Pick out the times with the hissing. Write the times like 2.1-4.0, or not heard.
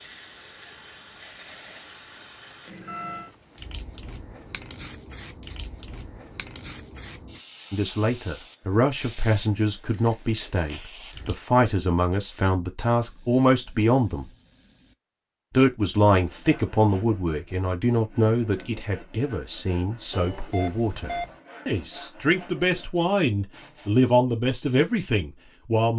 0.0-11.4.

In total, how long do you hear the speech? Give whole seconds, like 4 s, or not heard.
17 s.